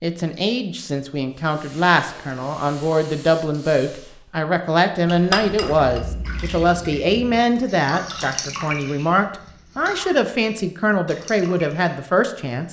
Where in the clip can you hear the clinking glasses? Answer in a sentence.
You can hear the clinking glasses from 5.0 to 6.0 s.